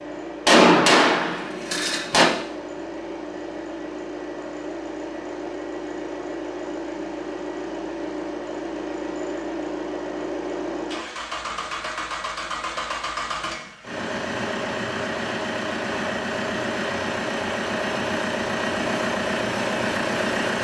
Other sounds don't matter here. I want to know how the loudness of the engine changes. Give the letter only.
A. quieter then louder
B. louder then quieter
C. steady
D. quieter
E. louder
E.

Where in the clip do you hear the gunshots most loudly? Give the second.
1 s.